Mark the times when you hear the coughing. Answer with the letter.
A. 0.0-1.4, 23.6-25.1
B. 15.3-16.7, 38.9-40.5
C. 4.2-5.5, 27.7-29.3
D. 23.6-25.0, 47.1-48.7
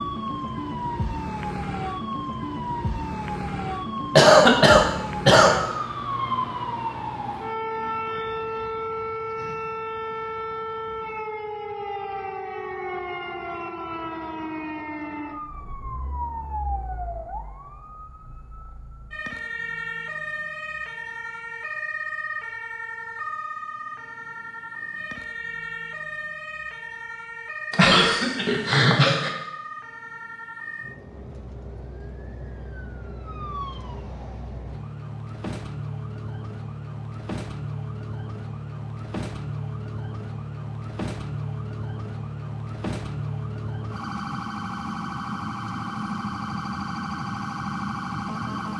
C.